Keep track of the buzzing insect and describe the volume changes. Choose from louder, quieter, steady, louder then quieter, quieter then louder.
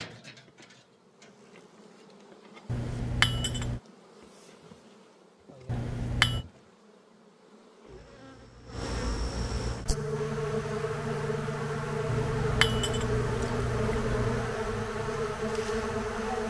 louder.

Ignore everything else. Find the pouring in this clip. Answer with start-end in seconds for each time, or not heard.
2.6-3.8, 5.7-6.5, 12.1-14.6.